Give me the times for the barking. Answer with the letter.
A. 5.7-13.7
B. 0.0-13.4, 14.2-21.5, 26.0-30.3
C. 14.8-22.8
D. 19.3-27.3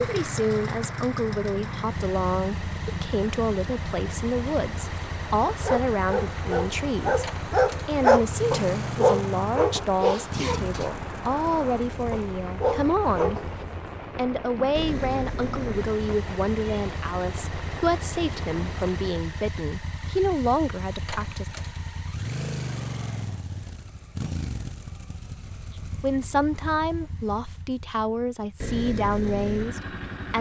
A.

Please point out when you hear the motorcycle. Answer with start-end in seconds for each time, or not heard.
0.0-30.3.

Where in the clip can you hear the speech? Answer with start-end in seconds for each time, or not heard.
0.0-13.4, 14.2-21.5, 26.0-30.3.